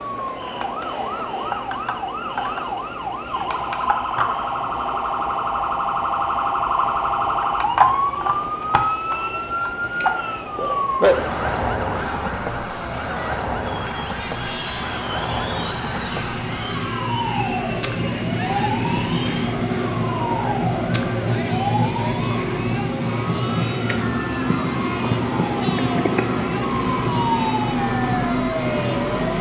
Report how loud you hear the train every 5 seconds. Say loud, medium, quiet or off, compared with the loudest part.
quiet, quiet, quiet, loud, loud, loud.